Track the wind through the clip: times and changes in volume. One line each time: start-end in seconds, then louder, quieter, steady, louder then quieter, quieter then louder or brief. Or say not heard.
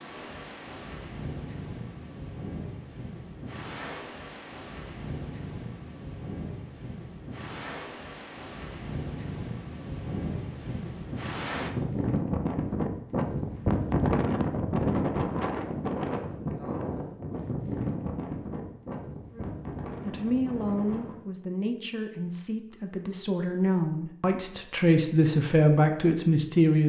0.0-21.1 louder then quieter.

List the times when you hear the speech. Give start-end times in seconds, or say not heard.
19.3-26.8.